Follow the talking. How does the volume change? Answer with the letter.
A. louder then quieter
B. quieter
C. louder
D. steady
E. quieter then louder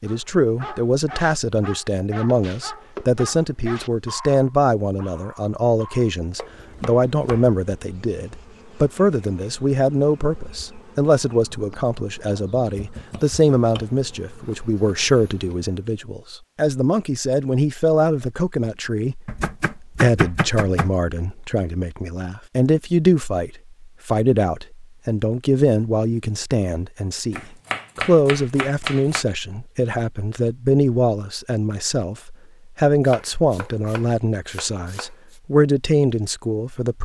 D.